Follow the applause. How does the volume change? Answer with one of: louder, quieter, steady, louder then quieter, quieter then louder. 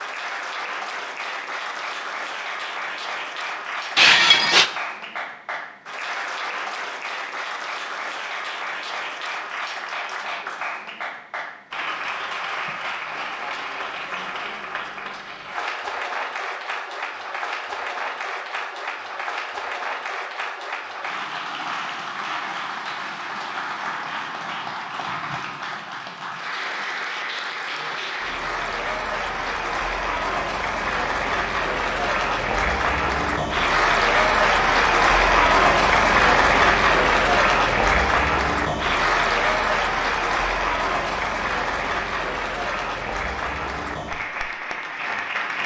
louder.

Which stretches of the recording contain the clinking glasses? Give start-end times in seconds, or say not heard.
4.0-4.7.